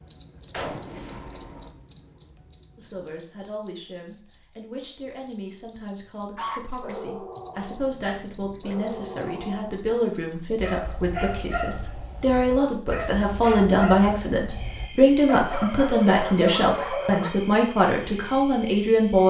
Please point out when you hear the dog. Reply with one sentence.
You can hear the dog from 6.3 to 9.8 s and from 10.6 to 17.8 s.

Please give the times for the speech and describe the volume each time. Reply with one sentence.
You can hear the speech from 2.8 to 19.2 s, getting louder.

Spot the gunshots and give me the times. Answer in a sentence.
You can hear the gunshots from 0.5 to 1.7 s.